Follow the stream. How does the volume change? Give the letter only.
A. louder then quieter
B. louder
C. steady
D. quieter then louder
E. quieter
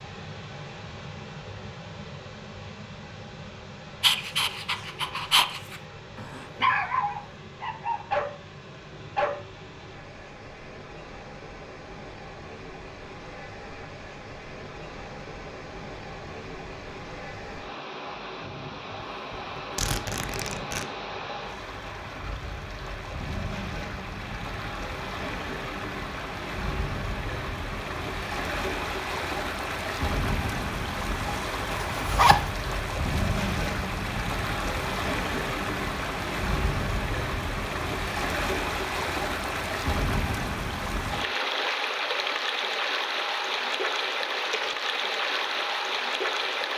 B.